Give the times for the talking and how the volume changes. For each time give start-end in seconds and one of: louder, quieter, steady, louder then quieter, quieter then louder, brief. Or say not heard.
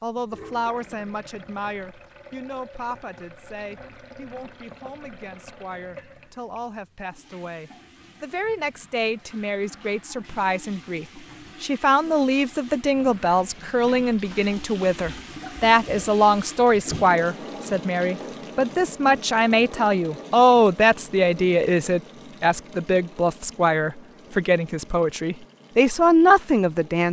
0.0-27.0 louder.